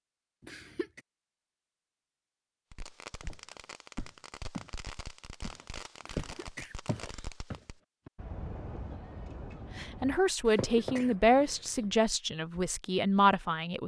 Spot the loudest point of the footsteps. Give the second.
6 s.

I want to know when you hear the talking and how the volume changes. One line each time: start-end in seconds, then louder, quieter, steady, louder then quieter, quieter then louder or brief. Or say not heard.
9.8-13.8 quieter then louder.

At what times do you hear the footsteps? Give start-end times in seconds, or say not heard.
3.2-4.8, 5.4-8.1.